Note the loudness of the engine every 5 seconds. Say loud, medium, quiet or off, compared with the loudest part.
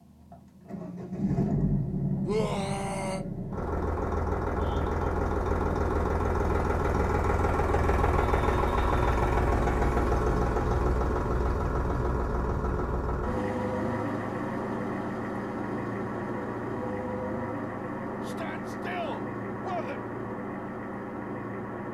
loud, loud, loud, medium, medium.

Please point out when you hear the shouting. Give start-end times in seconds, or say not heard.
2.2-3.2, 18.2-20.0.